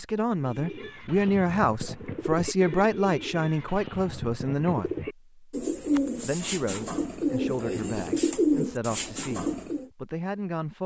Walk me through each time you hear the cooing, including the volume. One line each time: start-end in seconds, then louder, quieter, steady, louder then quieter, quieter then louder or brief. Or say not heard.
0.4-9.9 louder.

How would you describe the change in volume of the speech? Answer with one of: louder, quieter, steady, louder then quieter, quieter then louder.
quieter.